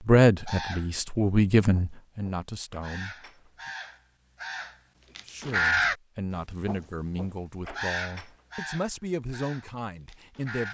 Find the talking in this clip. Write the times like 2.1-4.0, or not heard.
0.1-3.2, 5.2-10.6.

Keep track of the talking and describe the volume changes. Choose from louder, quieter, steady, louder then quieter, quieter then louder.
quieter.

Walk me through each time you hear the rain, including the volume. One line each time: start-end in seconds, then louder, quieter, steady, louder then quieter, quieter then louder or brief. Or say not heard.
not heard.